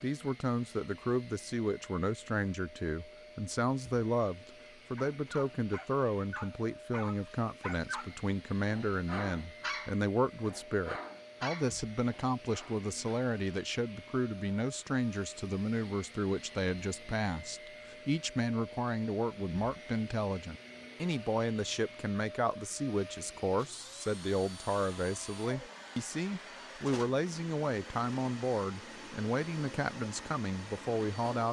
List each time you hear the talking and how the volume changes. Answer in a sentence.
The talking can be heard from 0.0 to 31.4 s, at a steady volume.